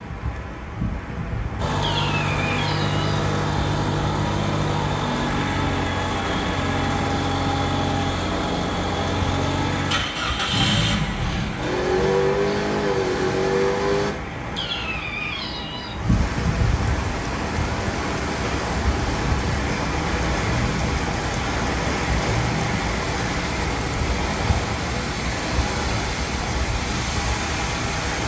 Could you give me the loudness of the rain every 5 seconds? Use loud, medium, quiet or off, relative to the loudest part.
medium, medium, medium, loud, loud, loud.